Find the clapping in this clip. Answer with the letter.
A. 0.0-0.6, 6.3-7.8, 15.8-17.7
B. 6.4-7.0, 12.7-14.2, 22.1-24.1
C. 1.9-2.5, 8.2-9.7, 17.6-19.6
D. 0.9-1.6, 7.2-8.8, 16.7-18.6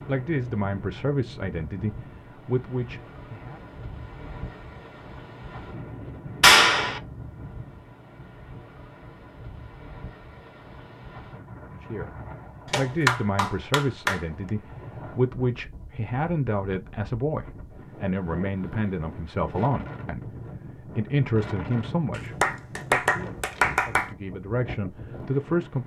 B.